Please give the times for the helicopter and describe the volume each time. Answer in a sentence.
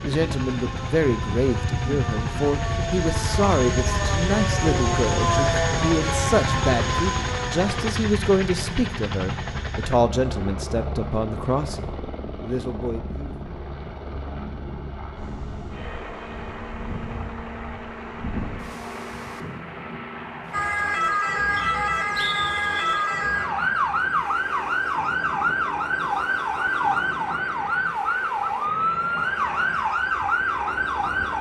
The helicopter can be heard from 0.0 to 31.3 s, getting quieter.